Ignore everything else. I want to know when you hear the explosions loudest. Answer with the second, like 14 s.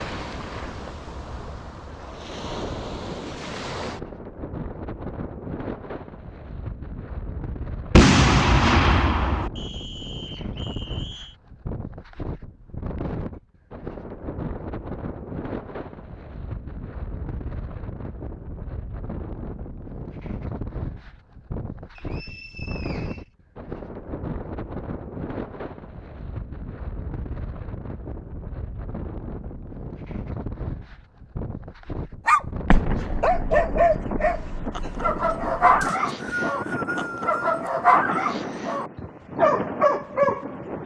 8 s.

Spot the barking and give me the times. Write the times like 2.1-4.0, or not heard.
32.2-40.8.